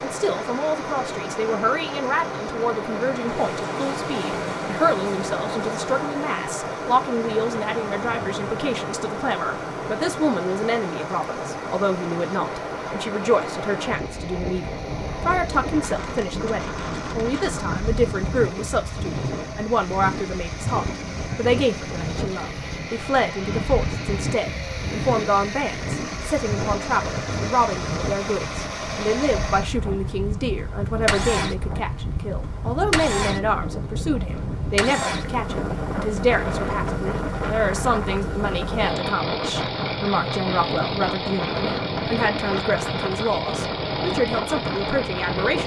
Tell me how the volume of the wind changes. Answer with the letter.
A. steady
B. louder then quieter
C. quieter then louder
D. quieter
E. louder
A.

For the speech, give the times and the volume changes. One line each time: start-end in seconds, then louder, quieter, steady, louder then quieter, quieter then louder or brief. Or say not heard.
0.0-45.6 steady.